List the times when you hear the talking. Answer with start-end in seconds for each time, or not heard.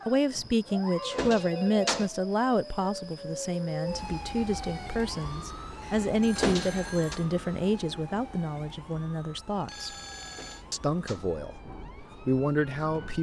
0.1-9.9, 10.7-13.1.